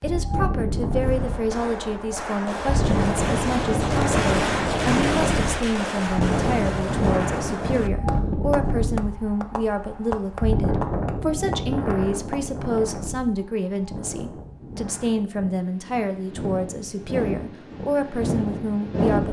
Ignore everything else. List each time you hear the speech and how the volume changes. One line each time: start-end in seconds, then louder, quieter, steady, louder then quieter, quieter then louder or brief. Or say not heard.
0.0-19.2 steady.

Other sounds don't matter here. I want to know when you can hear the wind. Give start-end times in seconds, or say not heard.
0.0-19.2.